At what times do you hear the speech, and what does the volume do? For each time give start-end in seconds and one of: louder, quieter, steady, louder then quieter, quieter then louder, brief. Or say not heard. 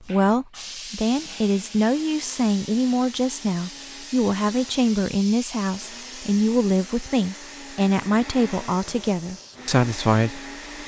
0.1-10.8 steady.